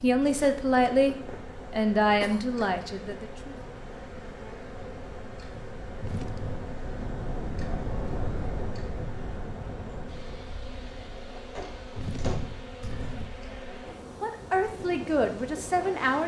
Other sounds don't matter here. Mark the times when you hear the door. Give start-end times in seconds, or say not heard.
11.3-12.4.